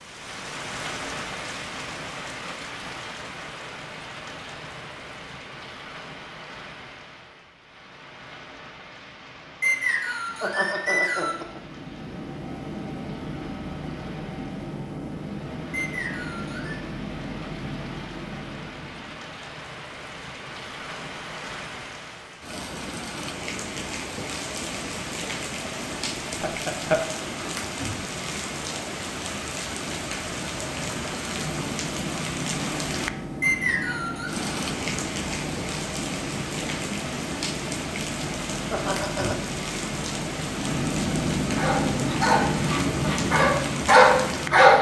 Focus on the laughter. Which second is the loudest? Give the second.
27 s.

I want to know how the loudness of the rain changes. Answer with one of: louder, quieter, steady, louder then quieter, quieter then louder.
quieter then louder.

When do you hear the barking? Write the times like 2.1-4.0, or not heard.
41.5-44.7.